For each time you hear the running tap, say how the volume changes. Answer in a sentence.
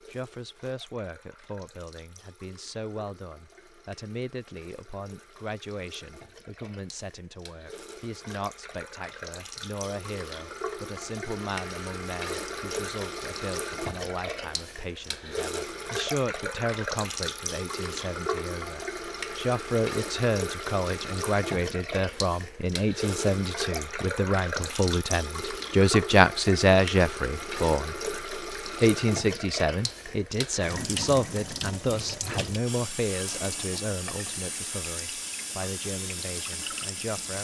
You can hear the running tap from 0.0 to 37.4 s, getting louder.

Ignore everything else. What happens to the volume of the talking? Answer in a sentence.
The loudness of the talking goes up, then down.